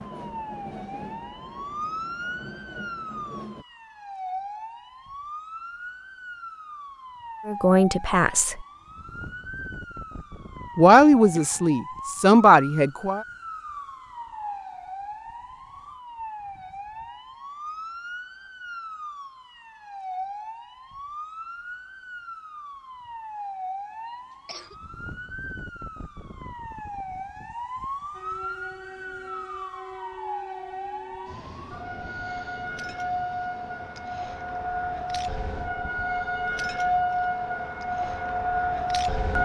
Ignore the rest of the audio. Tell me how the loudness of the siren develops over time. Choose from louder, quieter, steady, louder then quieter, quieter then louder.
louder.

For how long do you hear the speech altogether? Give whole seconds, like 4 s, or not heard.
4 s.